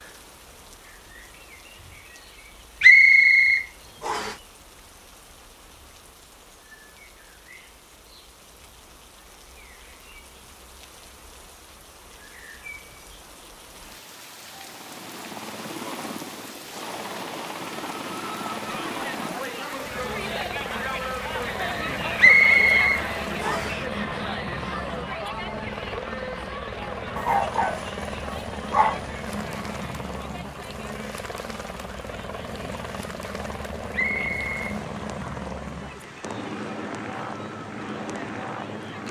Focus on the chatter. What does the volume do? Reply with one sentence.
The loudness of the chatter goes down.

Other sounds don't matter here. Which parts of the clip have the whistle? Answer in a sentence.
You can hear the whistle from 2.8 to 4.3 s, from 22.1 to 23.8 s and from 33.9 to 34.8 s.